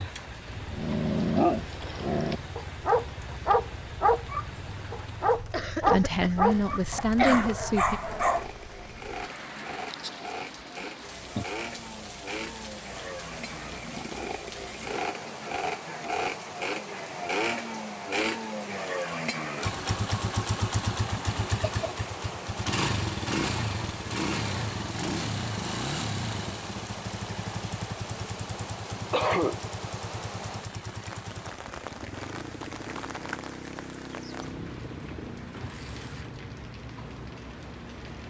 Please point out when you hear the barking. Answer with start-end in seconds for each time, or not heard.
0.7-8.4.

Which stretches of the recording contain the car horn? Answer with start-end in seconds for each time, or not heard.
not heard.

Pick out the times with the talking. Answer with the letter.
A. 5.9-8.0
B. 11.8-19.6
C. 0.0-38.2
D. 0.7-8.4
A.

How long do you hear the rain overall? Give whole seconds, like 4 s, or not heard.
38 s.